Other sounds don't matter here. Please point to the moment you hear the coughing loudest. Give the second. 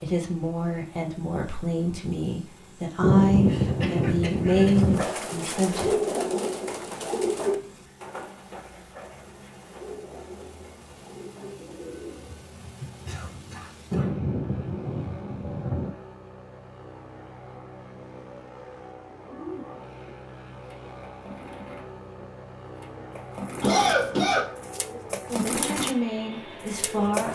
24 s.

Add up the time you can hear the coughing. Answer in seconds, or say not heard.
3 s.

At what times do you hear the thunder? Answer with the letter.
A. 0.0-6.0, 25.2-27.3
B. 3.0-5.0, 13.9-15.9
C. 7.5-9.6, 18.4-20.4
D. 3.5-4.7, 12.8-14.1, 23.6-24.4
B.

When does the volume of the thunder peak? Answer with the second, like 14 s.
3 s.